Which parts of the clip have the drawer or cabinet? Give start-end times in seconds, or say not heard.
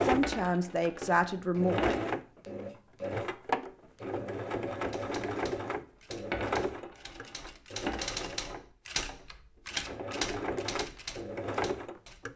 not heard.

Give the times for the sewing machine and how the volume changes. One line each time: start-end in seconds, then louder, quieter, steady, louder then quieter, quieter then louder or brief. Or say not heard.
0.0-12.3 quieter then louder.